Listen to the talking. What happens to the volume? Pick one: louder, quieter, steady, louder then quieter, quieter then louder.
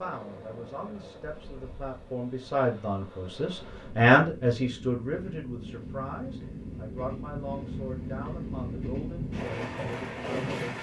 louder then quieter.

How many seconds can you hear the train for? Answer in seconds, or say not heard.
11 s.